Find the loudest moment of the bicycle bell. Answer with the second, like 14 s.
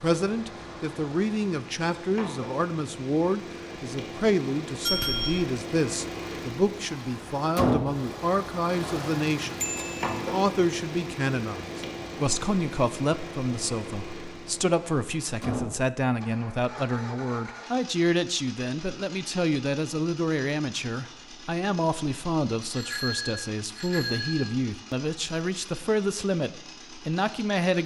5 s.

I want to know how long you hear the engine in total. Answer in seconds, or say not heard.
28 s.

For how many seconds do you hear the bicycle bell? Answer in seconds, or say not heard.
3 s.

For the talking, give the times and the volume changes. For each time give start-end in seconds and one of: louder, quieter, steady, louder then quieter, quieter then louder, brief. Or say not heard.
0.0-27.8 steady.